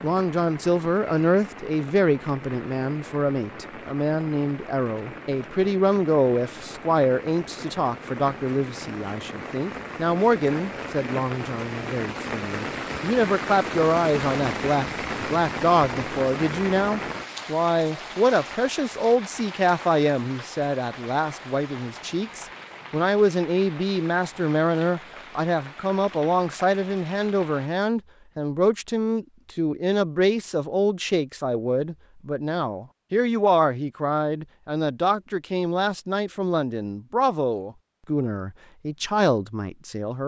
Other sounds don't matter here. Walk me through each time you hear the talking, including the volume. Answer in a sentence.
The talking can be heard from 0.0 to 40.2 s, at a steady volume.